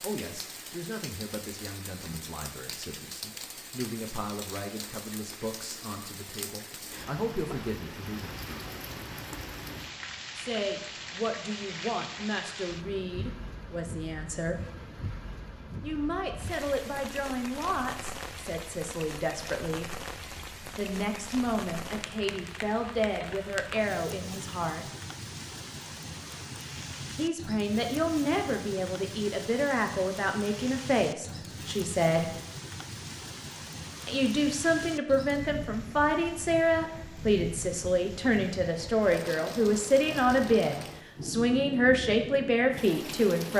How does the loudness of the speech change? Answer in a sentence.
The volume of the speech goes up.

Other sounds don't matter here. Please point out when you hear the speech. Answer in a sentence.
The speech can be heard from 0.0 to 8.3 s, from 10.3 to 14.6 s, from 15.8 to 19.9 s, from 20.8 to 24.9 s, from 27.1 to 32.3 s and from 34.0 to 43.5 s.